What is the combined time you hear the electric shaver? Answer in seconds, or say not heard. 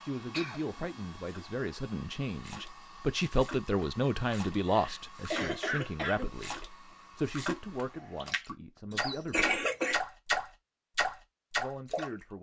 not heard.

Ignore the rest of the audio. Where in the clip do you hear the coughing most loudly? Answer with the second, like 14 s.
10 s.